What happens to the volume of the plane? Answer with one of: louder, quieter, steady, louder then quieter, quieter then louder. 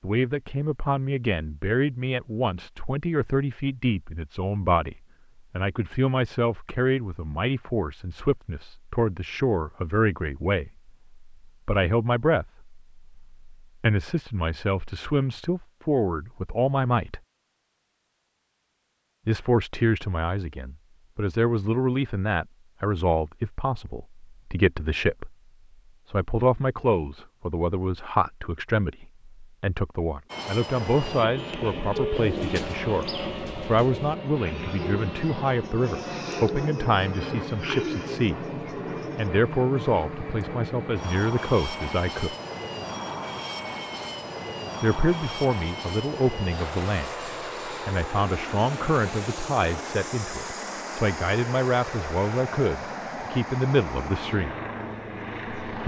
steady.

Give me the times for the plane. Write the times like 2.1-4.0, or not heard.
30.2-55.8.